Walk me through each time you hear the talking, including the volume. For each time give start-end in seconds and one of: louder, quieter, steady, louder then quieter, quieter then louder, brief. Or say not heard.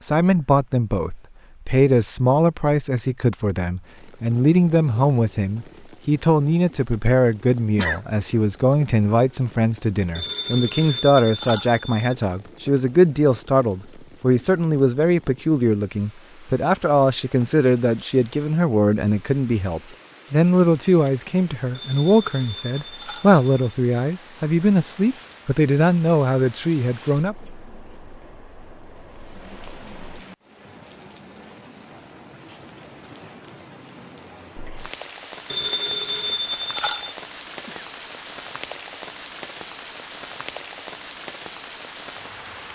0.0-27.4 steady.